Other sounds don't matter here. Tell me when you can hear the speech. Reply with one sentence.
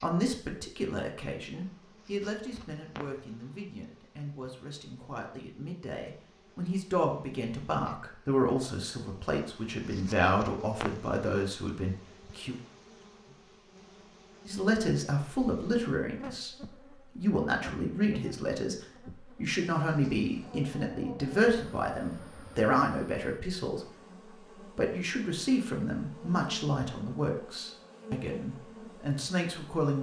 The speech can be heard from 0.0 to 12.6 s, from 14.4 to 23.9 s and from 24.6 to 29.9 s.